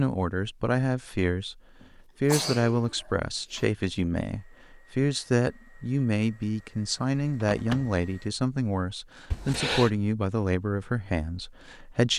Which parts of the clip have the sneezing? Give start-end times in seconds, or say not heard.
1.8-3.6, 9.3-9.9.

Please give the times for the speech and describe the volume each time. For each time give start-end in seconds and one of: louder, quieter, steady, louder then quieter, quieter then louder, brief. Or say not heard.
0.0-12.1 steady.